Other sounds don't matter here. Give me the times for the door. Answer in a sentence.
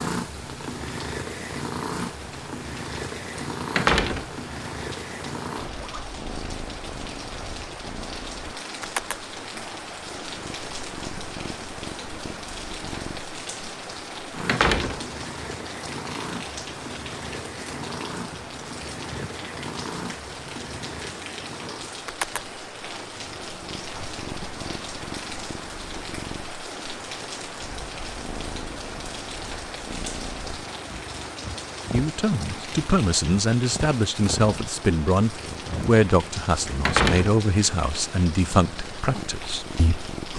The door can be heard from 3.8 to 4.3 s, from 14.4 to 15.0 s and from 36.9 to 38.0 s.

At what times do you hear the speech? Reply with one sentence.
The speech can be heard from 31.9 to 40.3 s.